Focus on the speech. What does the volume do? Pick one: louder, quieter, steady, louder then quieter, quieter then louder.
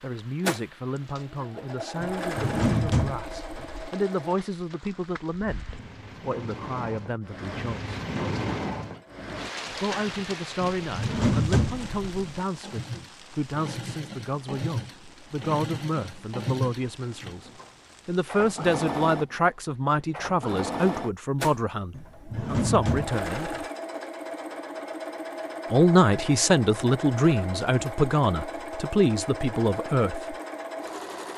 louder.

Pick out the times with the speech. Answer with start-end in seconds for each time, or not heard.
0.0-8.0, 9.8-23.5, 25.7-30.4.